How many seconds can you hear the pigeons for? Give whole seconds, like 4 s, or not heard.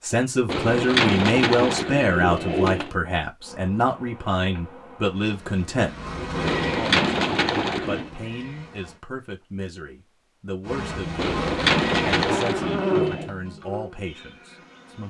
6 s.